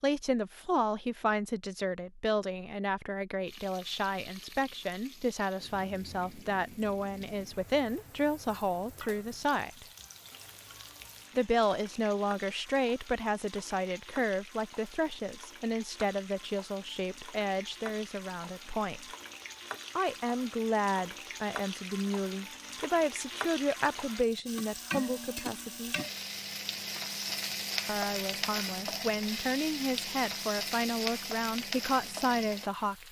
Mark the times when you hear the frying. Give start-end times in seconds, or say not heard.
3.5-33.0.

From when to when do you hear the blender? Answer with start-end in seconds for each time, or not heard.
not heard.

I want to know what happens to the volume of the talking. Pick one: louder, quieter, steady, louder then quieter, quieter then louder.
steady.